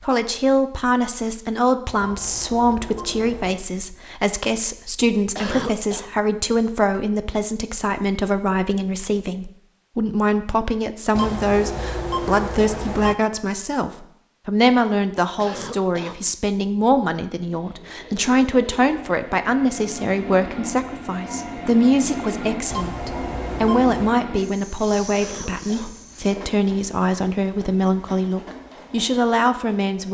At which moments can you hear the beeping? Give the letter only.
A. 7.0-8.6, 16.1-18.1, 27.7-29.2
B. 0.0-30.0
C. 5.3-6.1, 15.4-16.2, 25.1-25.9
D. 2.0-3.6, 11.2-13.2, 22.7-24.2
D.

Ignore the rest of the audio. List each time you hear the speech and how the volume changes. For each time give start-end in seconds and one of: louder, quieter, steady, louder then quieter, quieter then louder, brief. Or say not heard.
0.0-30.0 steady.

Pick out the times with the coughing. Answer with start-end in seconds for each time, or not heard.
5.3-6.1, 15.4-16.2, 25.1-25.9.